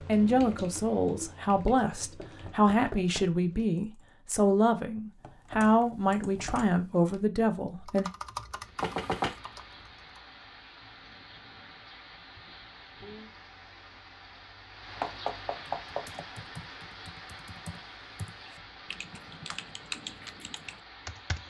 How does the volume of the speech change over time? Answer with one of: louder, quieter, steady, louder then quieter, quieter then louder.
steady.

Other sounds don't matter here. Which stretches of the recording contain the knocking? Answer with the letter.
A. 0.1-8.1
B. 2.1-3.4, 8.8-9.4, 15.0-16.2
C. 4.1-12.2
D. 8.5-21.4
B.